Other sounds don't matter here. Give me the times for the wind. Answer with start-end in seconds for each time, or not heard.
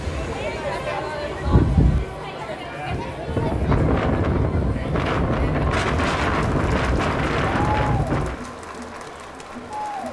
0.0-8.4.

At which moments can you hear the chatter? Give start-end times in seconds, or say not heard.
0.0-10.0.